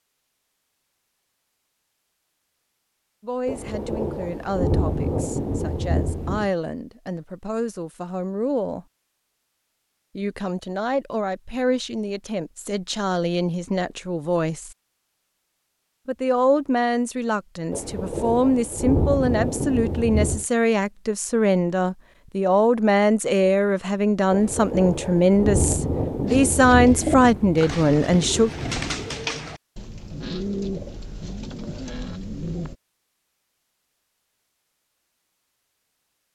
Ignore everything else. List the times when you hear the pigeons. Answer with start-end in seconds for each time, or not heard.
26.2-32.8.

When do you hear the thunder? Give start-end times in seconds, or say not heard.
3.5-6.5, 17.7-20.4, 24.3-29.2.